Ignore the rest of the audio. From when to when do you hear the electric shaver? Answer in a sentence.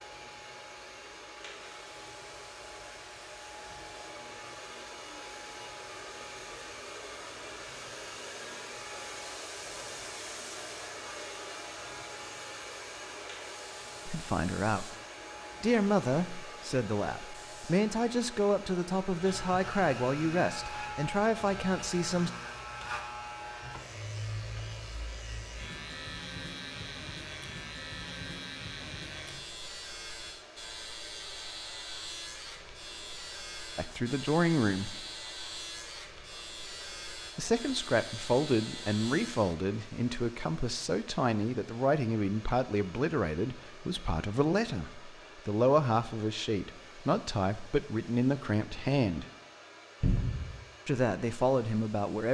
The electric shaver can be heard from 0.0 to 39.8 s.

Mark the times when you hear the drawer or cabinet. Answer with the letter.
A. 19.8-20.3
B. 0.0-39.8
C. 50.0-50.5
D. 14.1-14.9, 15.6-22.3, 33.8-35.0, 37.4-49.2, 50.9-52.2
C.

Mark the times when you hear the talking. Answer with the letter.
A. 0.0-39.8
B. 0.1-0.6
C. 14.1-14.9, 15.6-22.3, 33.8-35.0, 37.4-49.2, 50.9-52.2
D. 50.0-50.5
C.